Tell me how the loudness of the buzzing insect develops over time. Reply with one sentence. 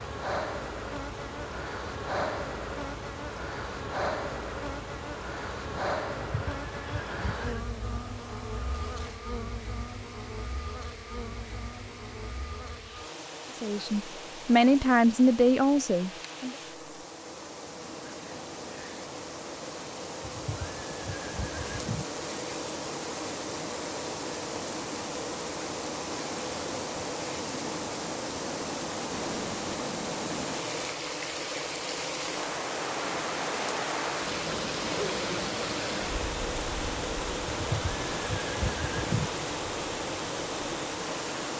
The loudness of the buzzing insect goes down, then up.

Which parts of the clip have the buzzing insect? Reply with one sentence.
You can hear the buzzing insect from 0.0 to 41.5 s.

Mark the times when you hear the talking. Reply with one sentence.
You can hear the talking from 13.6 to 16.6 s.